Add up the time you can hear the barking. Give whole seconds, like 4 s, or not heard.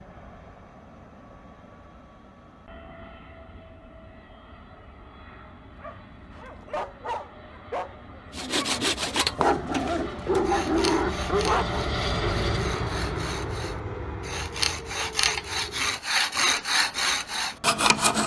6 s.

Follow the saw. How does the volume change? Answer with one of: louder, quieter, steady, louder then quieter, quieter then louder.
quieter then louder.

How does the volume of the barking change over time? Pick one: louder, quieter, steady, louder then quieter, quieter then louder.
louder.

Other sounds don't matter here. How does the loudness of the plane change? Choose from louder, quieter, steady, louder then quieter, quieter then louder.
louder then quieter.